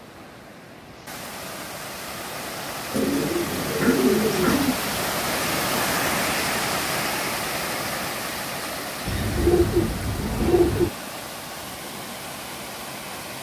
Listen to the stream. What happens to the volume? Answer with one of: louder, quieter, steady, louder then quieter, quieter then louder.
louder then quieter.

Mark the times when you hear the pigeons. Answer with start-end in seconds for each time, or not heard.
2.9-4.8, 9.1-10.9.